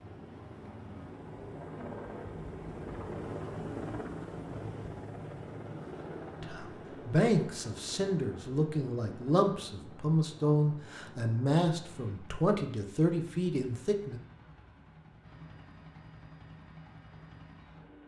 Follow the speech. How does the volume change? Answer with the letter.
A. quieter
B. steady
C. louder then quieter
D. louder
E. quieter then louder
B.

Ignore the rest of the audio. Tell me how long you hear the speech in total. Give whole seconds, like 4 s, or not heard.
8 s.